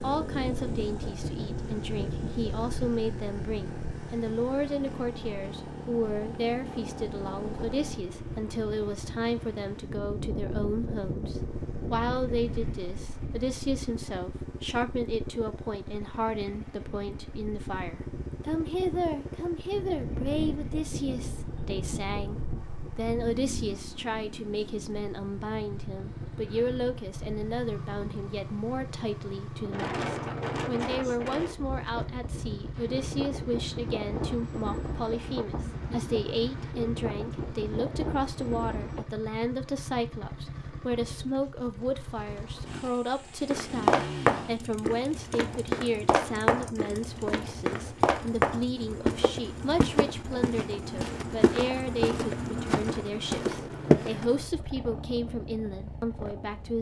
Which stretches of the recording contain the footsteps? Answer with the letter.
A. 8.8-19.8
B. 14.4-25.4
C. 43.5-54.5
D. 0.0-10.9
C.